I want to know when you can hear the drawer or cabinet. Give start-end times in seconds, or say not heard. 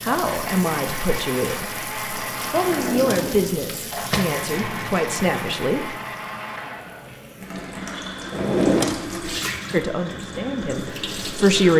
2.6-4.2, 8.3-8.9.